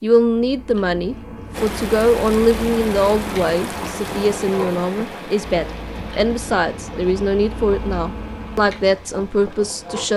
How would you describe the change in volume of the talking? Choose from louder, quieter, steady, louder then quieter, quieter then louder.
steady.